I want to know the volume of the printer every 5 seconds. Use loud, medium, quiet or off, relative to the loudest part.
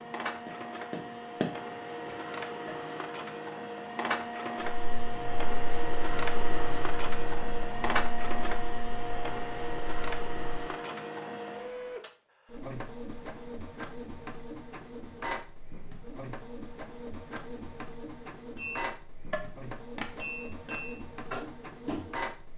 loud, loud, medium, medium, medium.